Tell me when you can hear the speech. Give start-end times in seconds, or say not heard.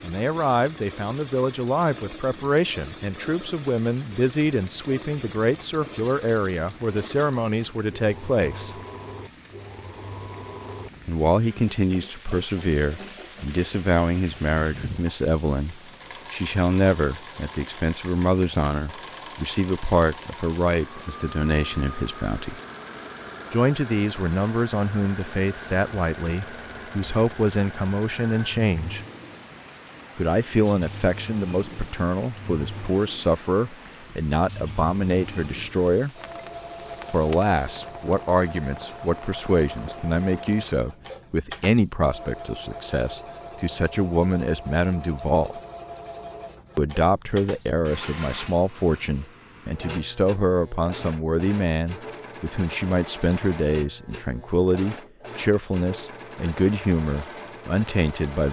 0.0-8.8, 11.1-22.6, 23.5-29.1, 30.1-36.1, 37.1-45.6, 46.8-58.4.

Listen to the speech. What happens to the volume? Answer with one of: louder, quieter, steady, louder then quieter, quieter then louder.
steady.